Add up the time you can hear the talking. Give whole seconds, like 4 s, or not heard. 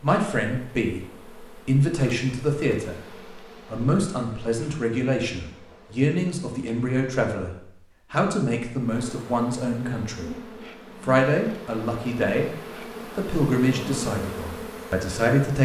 14 s.